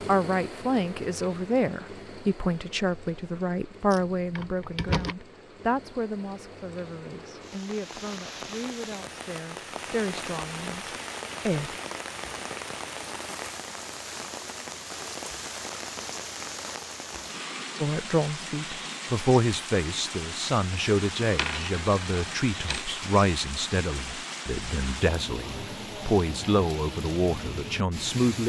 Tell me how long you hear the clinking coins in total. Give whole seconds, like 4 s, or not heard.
3 s.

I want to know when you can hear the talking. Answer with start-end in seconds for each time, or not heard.
0.1-11.8, 17.8-28.4.